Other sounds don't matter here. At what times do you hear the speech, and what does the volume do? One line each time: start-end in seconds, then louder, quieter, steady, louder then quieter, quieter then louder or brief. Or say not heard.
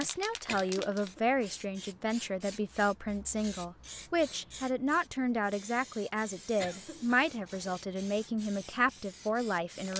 0.0-9.9 steady.